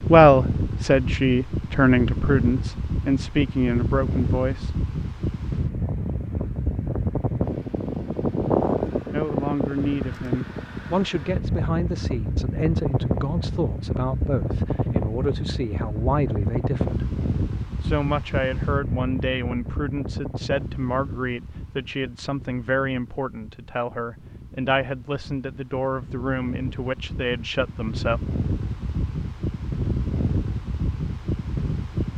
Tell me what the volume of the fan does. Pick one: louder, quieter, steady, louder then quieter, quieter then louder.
quieter then louder.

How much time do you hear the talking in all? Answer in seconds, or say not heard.
23 s.